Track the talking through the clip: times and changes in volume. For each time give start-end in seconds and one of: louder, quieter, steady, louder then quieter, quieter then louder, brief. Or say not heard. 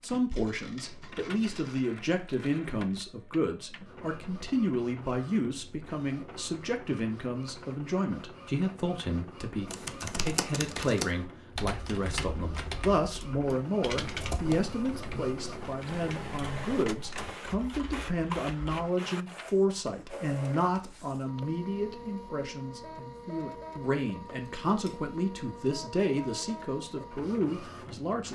0.0-28.3 steady.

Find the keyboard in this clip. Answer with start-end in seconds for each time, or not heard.
9.7-18.9.